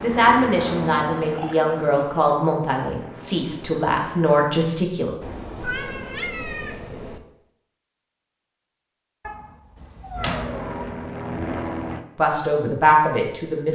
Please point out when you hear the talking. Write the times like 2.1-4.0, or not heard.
0.0-5.1, 12.2-13.7.